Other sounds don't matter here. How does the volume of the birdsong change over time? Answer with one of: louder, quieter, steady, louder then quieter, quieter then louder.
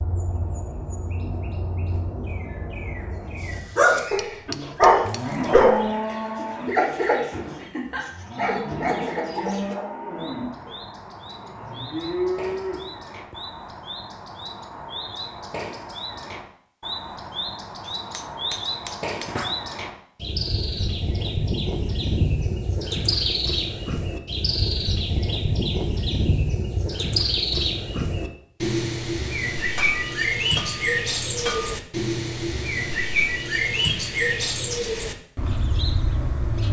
louder.